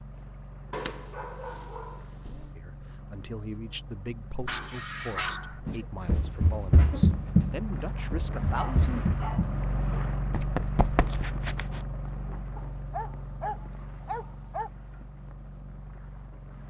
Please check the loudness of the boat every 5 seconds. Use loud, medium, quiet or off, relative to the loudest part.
medium, loud, loud, medium.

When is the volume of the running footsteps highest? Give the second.
7 s.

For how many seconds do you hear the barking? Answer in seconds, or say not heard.
6 s.